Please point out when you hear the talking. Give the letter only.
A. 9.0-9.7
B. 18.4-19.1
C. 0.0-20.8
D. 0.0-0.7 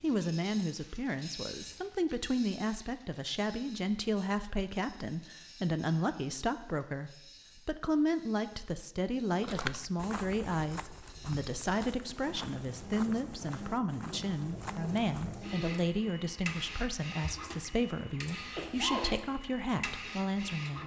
C.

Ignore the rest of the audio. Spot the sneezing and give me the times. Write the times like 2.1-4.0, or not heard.
18.4-19.1.